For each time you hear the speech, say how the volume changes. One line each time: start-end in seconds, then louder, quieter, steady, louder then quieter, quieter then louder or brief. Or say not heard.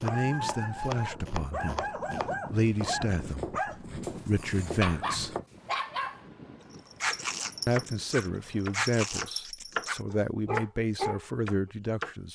0.0-1.9 brief
2.5-5.3 brief
7.7-12.2 steady.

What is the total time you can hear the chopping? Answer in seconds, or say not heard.
10 s.